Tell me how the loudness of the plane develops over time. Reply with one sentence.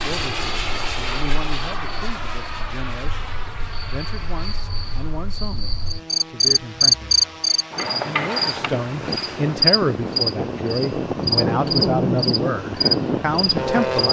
The loudness of the plane goes down, then up.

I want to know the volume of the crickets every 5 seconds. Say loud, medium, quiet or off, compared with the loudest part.
quiet, loud, loud.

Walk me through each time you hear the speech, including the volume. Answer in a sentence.
You can hear the speech from 0.0 to 14.0 s, getting louder.